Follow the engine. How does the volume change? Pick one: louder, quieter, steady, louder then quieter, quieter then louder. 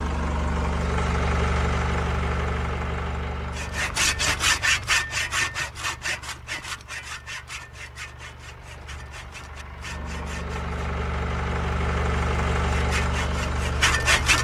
quieter then louder.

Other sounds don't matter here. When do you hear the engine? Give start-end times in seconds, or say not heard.
0.0-14.3.